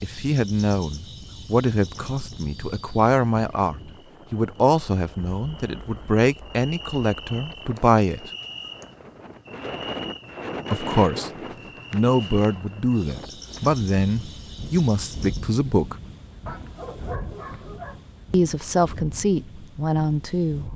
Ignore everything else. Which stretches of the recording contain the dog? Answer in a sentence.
The dog can be heard from 16.4 to 18.1 s.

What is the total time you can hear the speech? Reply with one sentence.
The speech can be heard for 15 seconds in total.